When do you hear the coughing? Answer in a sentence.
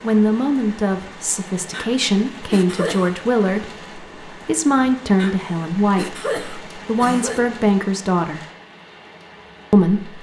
You can hear the coughing from 1.7 to 3.1 s and from 5.2 to 7.4 s.